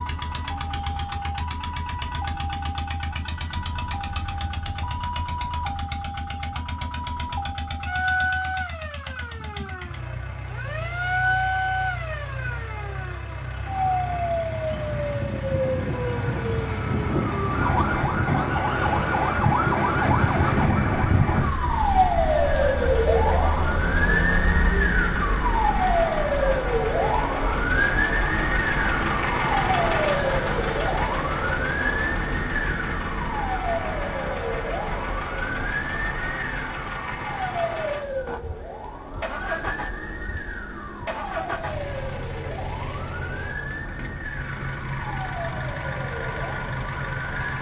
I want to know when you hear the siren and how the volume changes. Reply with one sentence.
You can hear the siren from 0.0 to 47.5 s, getting louder then quieter.